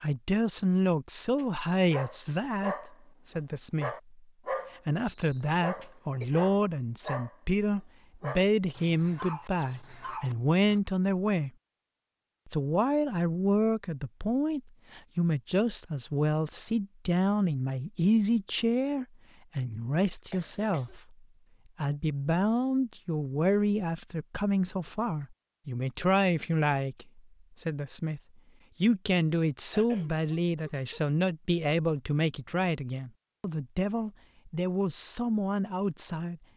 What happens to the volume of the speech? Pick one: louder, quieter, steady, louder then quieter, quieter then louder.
steady.